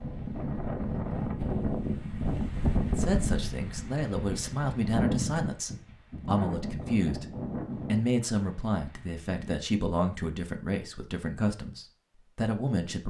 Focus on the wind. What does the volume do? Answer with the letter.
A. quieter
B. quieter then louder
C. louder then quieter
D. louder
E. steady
A.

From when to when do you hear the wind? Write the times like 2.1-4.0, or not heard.
0.0-9.6.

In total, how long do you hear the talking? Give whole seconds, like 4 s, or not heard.
10 s.